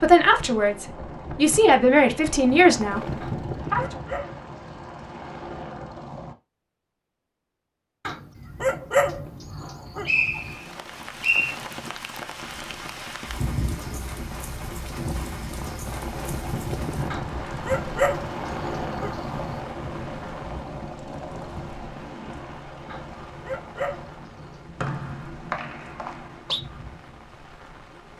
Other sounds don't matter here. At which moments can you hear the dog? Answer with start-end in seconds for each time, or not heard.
3.2-5.0, 8.1-10.6, 17.1-19.4, 22.9-24.6.